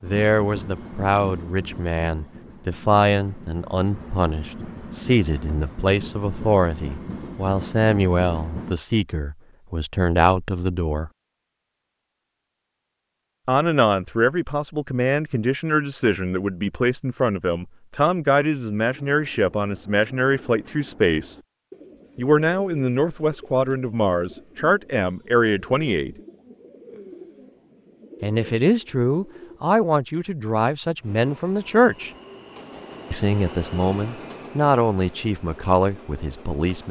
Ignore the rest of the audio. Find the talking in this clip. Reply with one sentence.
You can hear the talking from 0.0 to 11.1 s, from 13.4 to 21.4 s, from 22.1 to 26.1 s, from 28.2 to 32.1 s and from 33.1 to 36.8 s.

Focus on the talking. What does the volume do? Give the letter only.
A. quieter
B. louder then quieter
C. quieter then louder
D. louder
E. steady
E.